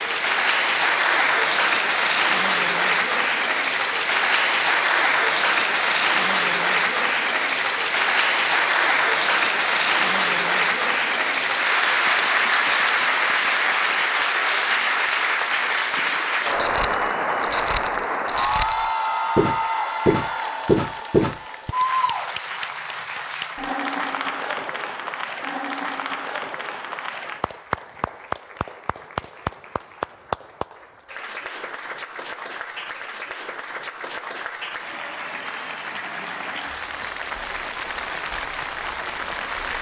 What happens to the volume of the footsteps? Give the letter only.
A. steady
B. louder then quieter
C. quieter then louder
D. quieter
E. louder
E.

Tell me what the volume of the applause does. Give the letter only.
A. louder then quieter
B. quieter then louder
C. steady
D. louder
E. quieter
E.